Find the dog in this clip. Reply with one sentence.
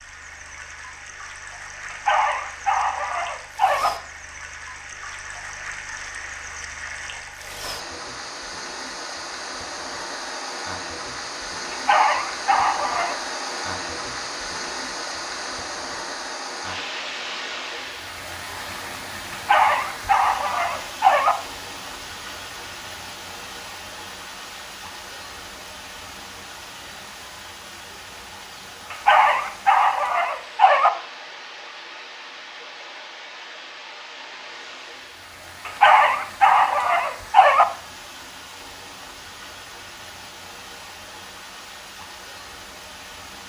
You can hear the dog from 1.9 to 3.9 s, from 11.7 to 13.2 s, from 19.3 to 21.4 s, from 28.9 to 30.9 s and from 35.6 to 37.6 s.